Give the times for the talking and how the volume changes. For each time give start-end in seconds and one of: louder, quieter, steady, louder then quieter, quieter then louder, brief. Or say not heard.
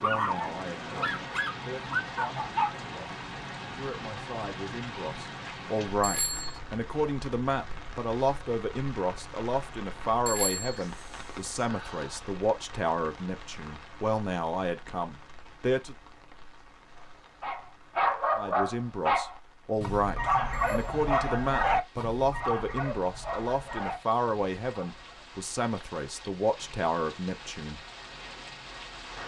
0.0-15.9 louder
18.4-27.8 steady.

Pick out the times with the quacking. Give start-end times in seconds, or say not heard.
not heard.